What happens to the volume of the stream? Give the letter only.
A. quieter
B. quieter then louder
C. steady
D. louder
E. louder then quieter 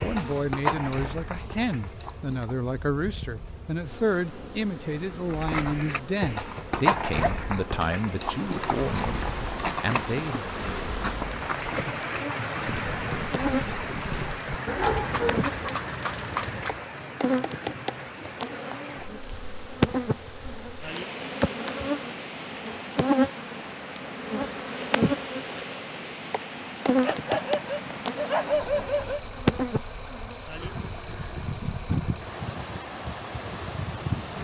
A.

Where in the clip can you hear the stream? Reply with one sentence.
You can hear the stream from 8.2 to 34.3 s.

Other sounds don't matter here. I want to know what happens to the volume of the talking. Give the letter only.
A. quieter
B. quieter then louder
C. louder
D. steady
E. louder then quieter
D.